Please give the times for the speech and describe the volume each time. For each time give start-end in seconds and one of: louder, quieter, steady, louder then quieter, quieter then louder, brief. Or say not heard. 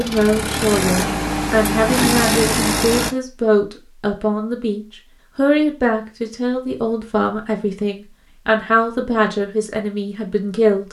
0.0-10.8 steady.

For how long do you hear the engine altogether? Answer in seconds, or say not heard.
3 s.